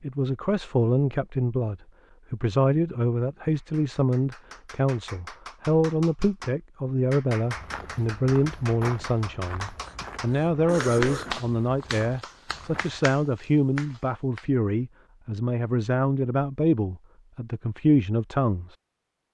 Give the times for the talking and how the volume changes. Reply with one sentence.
The talking can be heard from 0.0 to 18.8 s, at a steady volume.